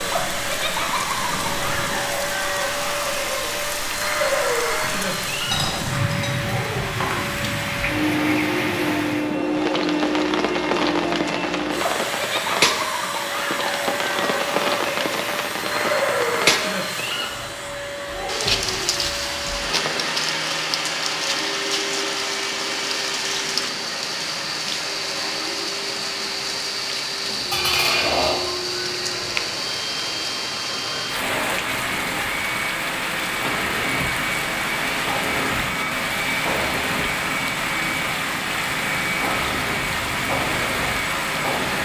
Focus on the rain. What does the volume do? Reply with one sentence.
The loudness of the rain stays about the same.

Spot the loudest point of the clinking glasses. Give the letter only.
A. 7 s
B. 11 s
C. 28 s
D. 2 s
C.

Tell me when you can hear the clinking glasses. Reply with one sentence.
The clinking glasses can be heard from 5.5 to 7.2 s and from 27.5 to 28.5 s.